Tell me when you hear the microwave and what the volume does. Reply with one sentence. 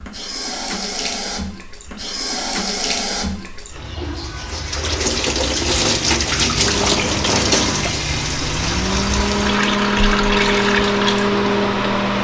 You can hear the microwave from 6.6 to 12.1 s, getting louder.